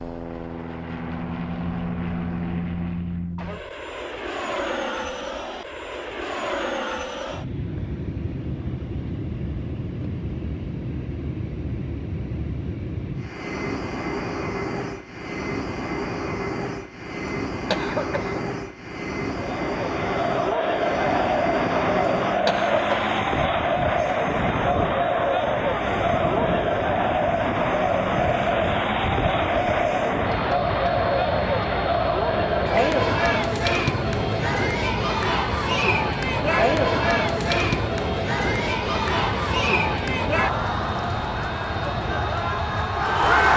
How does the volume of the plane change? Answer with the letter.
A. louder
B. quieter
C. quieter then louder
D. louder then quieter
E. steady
E.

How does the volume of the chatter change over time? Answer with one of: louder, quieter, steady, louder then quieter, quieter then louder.
steady.